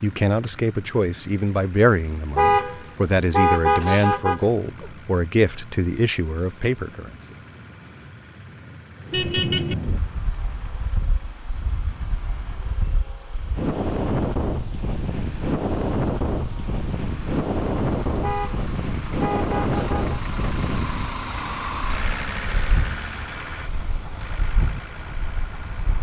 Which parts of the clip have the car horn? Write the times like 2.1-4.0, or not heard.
2.4-4.9, 9.1-9.8, 18.2-20.2.